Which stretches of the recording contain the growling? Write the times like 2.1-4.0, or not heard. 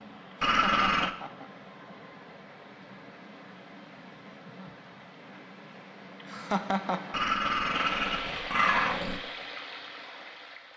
0.4-1.1, 7.1-9.2.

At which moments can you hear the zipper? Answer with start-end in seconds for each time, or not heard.
not heard.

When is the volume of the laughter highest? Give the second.
7 s.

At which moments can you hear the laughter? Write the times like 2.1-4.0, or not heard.
0.5-1.5, 6.2-7.2.